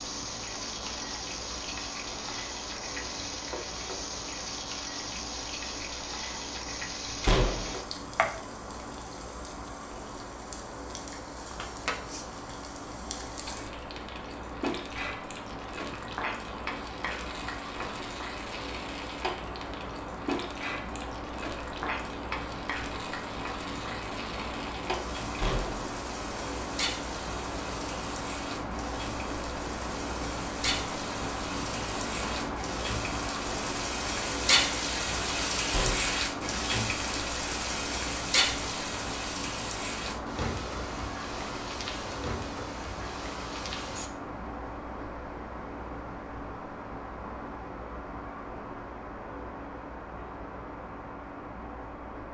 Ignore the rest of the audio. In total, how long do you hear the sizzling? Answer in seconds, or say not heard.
44 s.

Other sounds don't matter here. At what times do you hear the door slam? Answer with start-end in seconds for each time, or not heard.
7.2-7.8, 25.4-25.9, 35.7-36.2.